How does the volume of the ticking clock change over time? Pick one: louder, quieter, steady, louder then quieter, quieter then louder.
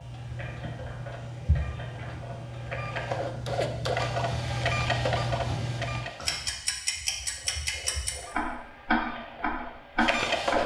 louder.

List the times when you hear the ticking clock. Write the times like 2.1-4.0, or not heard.
0.0-10.6.